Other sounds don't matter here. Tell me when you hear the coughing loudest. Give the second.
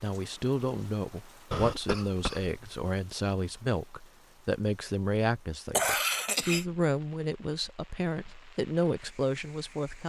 6 s.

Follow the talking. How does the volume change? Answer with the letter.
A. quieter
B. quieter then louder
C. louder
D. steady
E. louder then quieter
D.